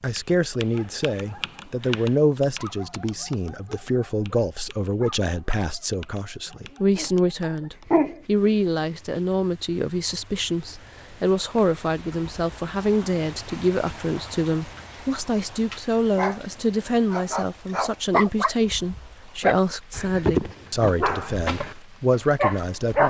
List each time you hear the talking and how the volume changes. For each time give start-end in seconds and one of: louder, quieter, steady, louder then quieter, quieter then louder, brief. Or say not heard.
0.0-23.0 steady.